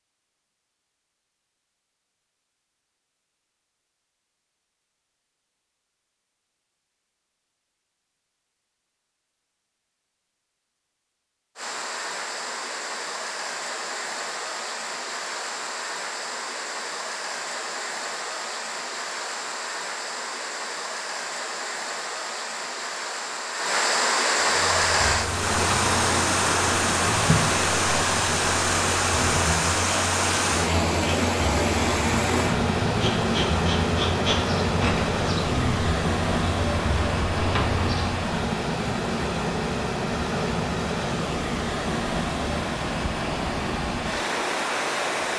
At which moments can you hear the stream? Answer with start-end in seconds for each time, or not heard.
11.6-45.3.